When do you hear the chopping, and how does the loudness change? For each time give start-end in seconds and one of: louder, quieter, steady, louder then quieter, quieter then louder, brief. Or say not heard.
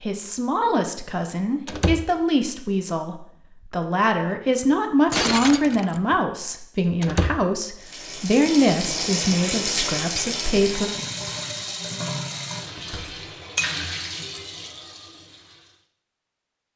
not heard.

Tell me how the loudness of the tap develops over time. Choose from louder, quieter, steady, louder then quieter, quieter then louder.
quieter.